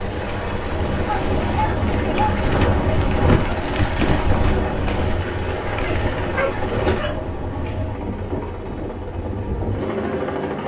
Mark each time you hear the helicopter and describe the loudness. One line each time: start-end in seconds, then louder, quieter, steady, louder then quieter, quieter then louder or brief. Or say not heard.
0.0-10.6 steady.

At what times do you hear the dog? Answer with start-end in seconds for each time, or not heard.
1.1-2.4, 5.8-7.3.